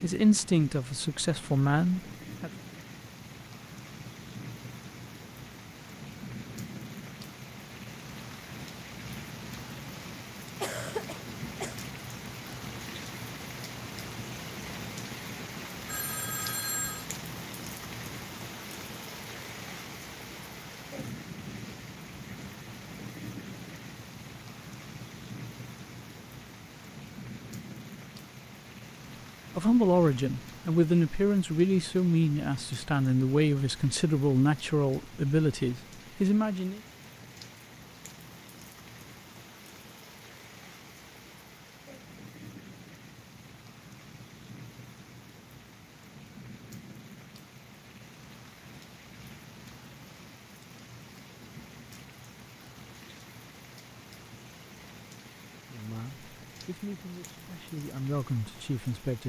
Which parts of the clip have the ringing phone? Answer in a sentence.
You can hear the ringing phone from 15.8 to 17.1 s.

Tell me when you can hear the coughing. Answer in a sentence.
You can hear the coughing from 10.6 to 11.8 s.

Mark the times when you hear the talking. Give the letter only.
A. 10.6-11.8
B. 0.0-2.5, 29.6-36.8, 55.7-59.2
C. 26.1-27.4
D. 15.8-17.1
B.